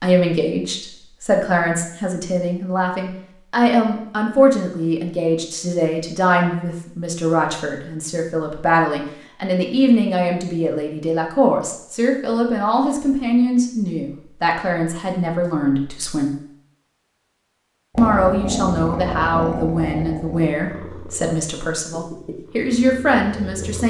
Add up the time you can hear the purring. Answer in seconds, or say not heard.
6 s.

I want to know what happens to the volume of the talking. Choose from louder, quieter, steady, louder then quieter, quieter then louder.
steady.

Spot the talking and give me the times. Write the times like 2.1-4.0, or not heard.
0.0-16.4, 17.9-23.8.